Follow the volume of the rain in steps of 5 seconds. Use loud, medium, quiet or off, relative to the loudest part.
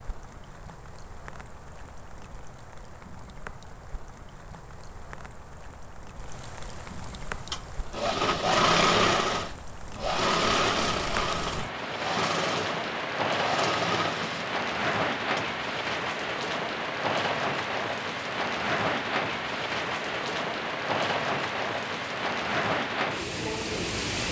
quiet, quiet, loud, loud, loud.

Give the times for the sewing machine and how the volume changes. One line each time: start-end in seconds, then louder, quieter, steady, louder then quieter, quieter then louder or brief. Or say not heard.
7.5-15.4 quieter.